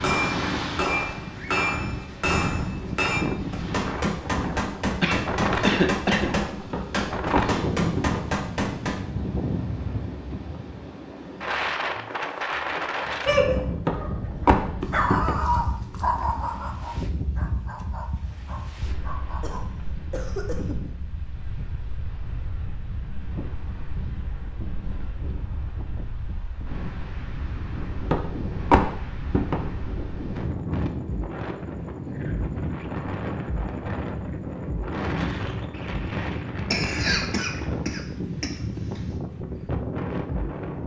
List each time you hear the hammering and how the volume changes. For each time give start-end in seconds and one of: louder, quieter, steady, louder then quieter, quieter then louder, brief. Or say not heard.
0.0-9.0 steady.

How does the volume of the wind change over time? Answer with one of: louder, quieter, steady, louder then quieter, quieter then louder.
quieter then louder.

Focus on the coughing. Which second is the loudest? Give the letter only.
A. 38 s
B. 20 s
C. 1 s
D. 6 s
D.